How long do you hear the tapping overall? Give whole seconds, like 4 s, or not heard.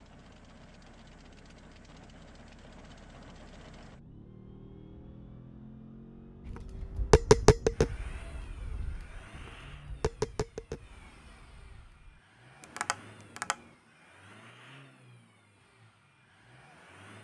7 s.